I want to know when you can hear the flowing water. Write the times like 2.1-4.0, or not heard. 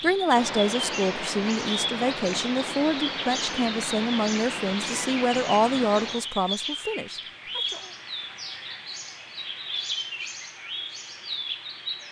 0.0-6.3.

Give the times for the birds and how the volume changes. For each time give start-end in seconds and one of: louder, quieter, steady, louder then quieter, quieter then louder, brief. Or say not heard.
0.0-12.0 steady.